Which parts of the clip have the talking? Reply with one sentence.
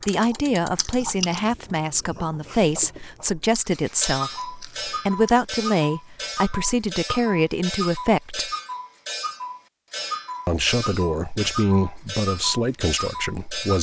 The talking can be heard from 0.1 to 8.5 s and from 10.4 to 13.7 s.